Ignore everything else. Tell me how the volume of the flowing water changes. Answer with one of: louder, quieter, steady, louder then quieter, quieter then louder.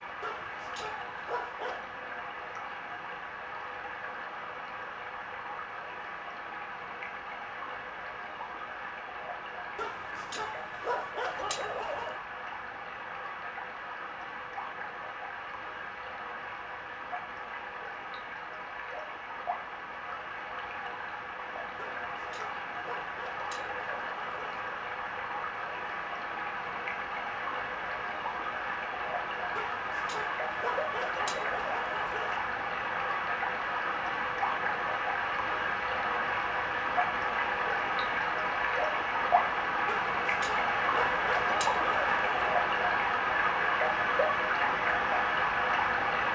louder.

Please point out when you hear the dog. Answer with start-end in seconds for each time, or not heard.
0.2-1.9, 9.8-12.2, 21.8-24.6, 29.6-32.4, 39.9-42.4.